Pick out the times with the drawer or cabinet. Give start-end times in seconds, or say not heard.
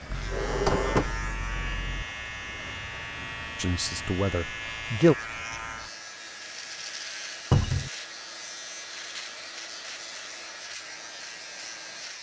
0.1-2.0, 7.5-7.9.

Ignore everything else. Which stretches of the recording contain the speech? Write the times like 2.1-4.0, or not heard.
3.5-5.2.